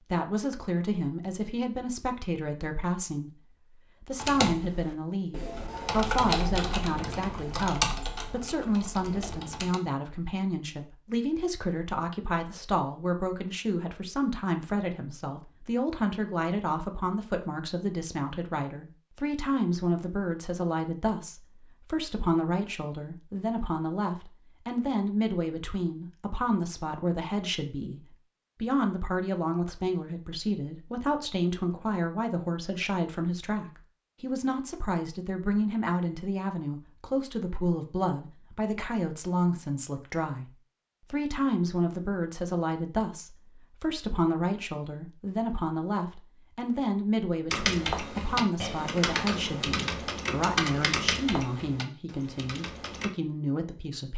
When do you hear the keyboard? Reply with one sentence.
The keyboard can be heard from 4.2 to 9.8 s and from 47.5 to 53.1 s.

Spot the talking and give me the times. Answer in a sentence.
You can hear the talking from 0.0 to 54.1 s.